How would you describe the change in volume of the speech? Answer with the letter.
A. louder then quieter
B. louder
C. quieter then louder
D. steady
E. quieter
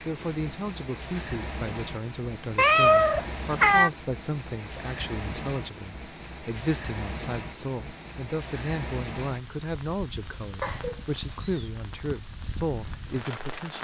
D.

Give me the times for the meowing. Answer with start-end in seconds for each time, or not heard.
2.5-3.9, 10.6-11.7.